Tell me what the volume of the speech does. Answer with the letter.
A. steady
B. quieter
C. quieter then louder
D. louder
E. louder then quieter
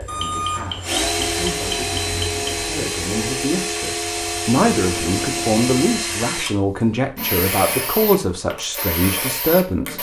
D.